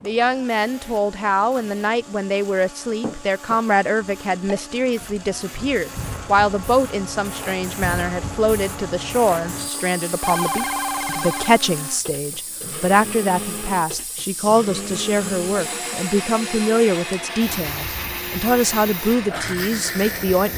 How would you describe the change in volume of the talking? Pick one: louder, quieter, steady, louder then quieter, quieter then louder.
steady.